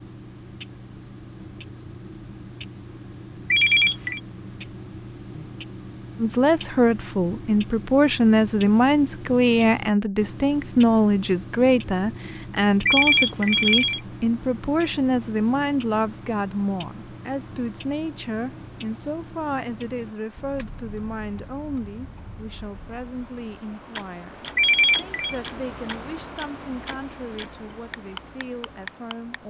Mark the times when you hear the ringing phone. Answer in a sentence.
You can hear the ringing phone from 3.5 to 4.2 s, from 12.8 to 14.0 s and from 24.6 to 25.4 s.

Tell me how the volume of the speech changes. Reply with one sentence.
The loudness of the speech goes down.